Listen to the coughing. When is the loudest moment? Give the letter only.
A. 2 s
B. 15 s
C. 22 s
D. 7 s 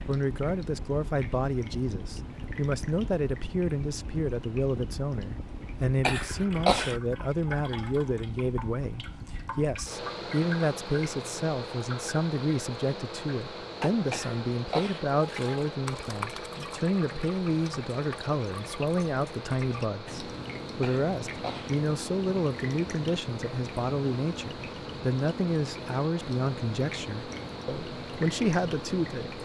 D.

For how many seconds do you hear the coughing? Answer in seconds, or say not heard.
3 s.